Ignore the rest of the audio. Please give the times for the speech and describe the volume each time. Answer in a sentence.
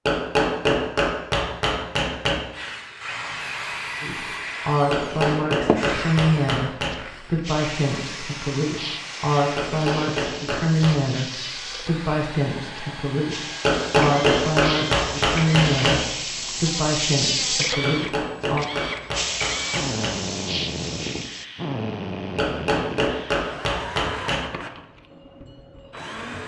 The speech can be heard from 4.0 to 18.6 s, at a steady volume.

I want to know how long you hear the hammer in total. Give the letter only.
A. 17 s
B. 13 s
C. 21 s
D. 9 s
B.